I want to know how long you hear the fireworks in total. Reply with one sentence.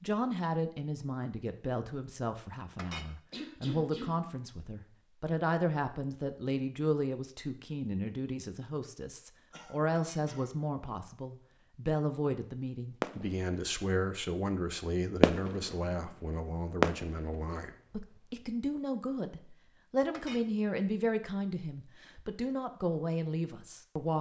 The fireworks can be heard for 3 seconds in total.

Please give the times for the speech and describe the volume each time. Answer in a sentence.
You can hear the speech from 0.0 to 24.1 s, at a steady volume.